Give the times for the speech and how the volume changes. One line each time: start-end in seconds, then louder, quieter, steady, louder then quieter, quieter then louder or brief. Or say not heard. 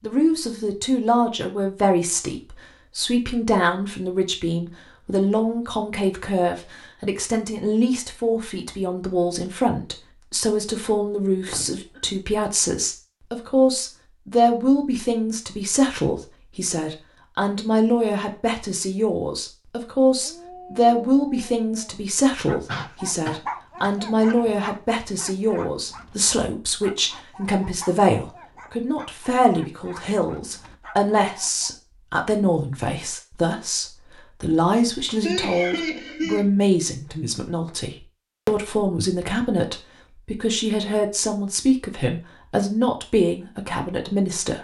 0.0-44.5 steady.